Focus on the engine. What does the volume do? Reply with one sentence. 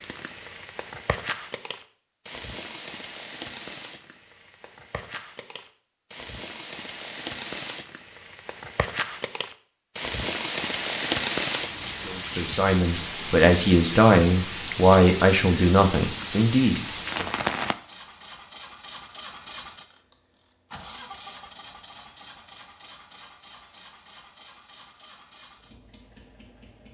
The loudness of the engine goes down.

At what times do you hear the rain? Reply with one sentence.
The rain can be heard from 0.0 to 17.8 s.